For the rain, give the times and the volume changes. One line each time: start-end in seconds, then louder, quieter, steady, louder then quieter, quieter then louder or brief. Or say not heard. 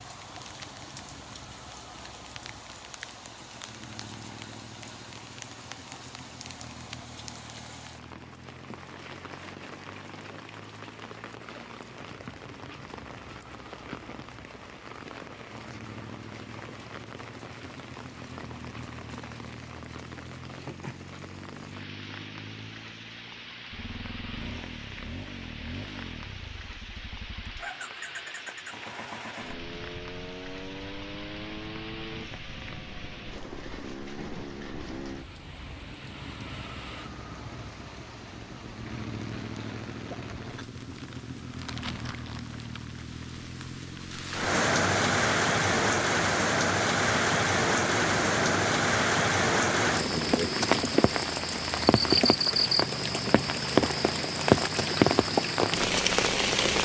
0.0-56.8 louder.